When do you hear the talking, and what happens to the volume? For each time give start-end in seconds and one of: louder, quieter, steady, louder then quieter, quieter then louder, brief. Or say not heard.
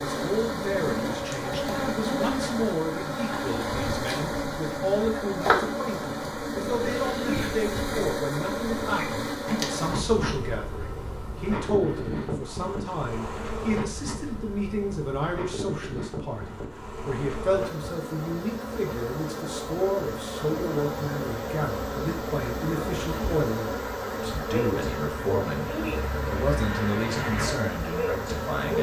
0.1-28.7 steady.